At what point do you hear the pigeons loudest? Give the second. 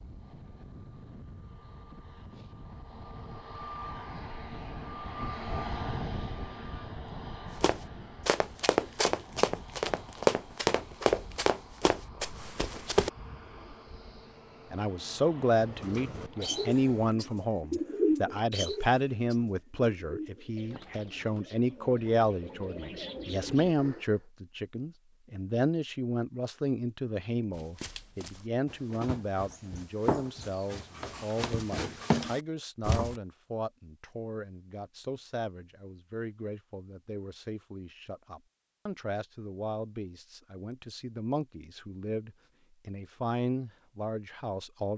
18 s.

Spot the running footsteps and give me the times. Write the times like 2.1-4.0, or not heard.
7.6-13.1, 27.5-33.1.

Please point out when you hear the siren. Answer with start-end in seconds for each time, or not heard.
not heard.